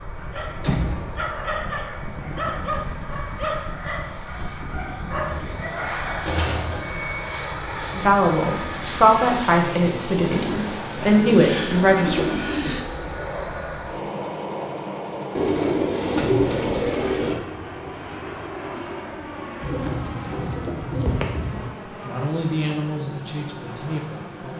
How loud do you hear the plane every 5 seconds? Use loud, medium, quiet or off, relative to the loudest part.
medium, loud, loud, loud, medium.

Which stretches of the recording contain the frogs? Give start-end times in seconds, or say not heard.
not heard.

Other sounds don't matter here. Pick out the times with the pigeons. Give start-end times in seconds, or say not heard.
0.3-1.6, 5.7-7.0, 11.2-12.8, 15.3-17.4, 19.6-21.6.